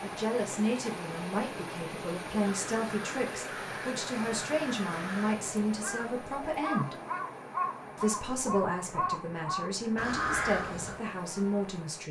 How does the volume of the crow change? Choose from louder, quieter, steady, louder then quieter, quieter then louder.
louder.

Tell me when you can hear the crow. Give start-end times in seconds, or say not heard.
2.6-11.0.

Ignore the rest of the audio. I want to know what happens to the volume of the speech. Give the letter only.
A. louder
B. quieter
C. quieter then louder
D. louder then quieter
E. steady
E.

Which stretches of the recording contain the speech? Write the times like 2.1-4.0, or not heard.
0.0-7.0, 8.0-12.0.